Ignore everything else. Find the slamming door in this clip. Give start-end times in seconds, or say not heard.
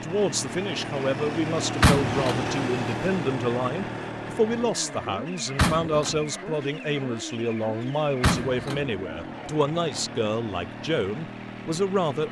1.8-2.5, 5.5-6.2, 8.2-8.8.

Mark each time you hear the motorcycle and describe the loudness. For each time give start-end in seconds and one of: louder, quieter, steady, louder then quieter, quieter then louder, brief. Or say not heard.
0.0-12.2 quieter.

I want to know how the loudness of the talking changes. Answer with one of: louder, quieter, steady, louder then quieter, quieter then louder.
steady.